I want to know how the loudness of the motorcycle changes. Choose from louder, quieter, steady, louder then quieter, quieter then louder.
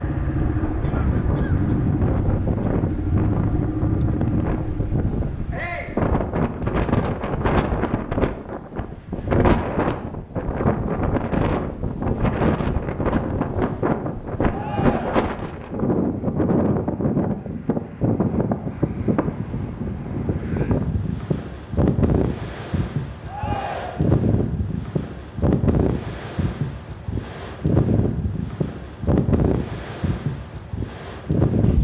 steady.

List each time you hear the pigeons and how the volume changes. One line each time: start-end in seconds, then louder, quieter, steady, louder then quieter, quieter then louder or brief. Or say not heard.
not heard.